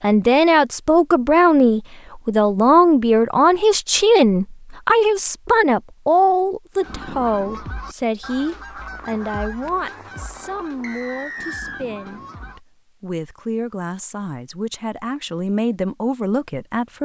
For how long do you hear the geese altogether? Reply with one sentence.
The geese can be heard for 6 seconds in total.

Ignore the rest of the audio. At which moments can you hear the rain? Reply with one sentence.
You can't hear the rain here.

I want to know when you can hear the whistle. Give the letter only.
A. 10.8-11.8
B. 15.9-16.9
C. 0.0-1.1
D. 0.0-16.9
A.